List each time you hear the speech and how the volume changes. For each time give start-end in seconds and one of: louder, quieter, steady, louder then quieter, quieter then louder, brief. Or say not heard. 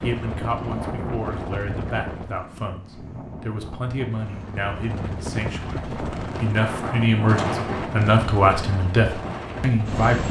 0.0-10.2 louder.